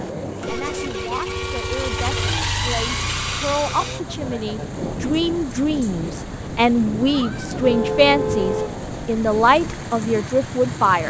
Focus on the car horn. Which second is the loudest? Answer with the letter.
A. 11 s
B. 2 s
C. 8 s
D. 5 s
C.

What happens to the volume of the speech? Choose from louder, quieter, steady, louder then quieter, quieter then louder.
louder.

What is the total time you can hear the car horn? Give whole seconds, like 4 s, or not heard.
3 s.